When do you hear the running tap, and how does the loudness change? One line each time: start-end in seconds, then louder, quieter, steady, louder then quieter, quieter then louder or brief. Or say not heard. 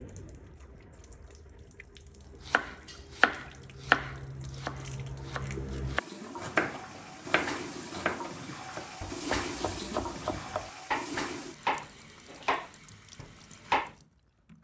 0.0-14.6 louder then quieter.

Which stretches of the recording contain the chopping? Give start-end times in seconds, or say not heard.
2.5-13.9.